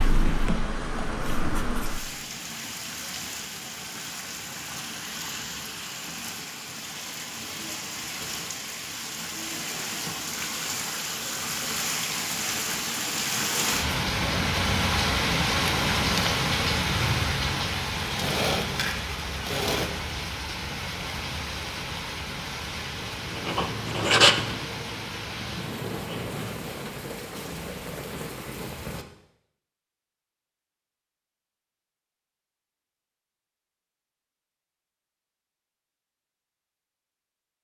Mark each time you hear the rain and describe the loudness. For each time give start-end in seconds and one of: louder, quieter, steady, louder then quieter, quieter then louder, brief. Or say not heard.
0.0-29.1 louder then quieter.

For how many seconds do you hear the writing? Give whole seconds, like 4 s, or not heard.
6 s.